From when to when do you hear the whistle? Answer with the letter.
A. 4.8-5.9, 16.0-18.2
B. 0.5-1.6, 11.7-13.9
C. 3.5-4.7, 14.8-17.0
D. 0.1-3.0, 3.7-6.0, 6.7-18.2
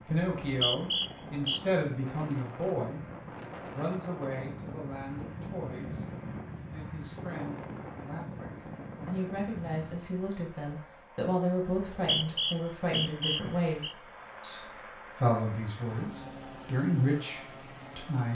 B.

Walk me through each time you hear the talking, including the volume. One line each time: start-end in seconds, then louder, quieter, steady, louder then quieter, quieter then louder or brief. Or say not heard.
0.1-3.0 brief
3.7-6.0 brief
6.7-18.2 louder.